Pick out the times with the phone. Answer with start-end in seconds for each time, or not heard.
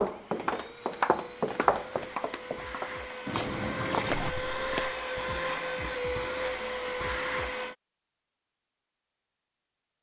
not heard.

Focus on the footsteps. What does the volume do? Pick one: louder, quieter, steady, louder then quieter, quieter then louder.
quieter then louder.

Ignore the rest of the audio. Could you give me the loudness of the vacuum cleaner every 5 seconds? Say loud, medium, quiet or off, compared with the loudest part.
medium, loud.